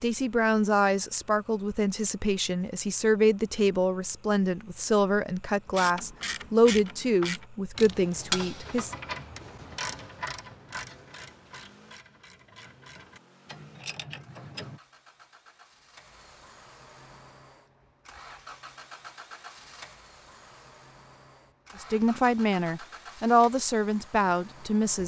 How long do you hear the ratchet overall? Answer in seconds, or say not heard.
9 s.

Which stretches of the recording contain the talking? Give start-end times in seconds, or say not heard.
0.0-8.9, 21.8-25.0.